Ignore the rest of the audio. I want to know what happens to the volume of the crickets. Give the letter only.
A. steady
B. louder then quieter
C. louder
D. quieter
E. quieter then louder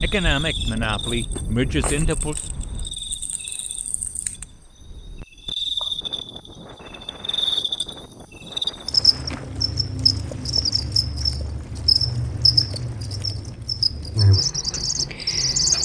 C.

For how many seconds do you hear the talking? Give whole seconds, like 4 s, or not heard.
2 s.